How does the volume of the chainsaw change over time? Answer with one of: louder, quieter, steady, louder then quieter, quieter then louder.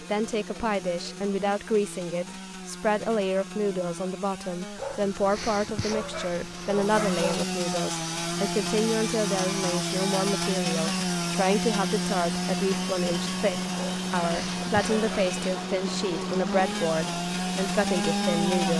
louder.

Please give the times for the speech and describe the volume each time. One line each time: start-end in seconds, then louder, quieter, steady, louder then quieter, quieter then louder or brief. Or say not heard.
0.0-18.7 steady.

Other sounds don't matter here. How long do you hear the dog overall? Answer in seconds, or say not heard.
4 s.